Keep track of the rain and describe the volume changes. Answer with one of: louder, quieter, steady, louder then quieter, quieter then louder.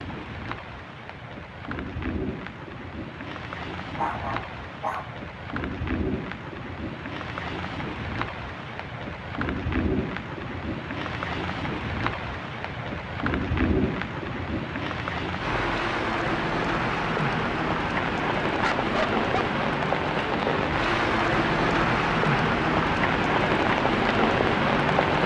louder.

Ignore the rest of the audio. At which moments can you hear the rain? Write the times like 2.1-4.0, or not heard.
0.0-25.2.